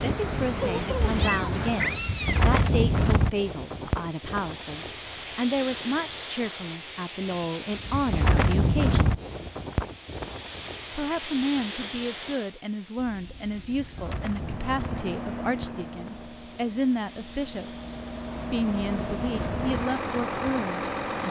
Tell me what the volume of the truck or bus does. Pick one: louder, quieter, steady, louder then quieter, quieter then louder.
quieter then louder.